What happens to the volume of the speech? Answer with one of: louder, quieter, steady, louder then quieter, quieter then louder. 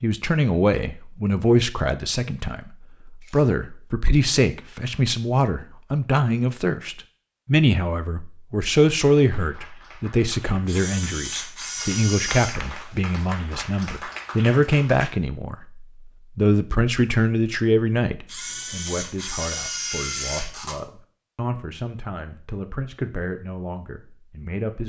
quieter.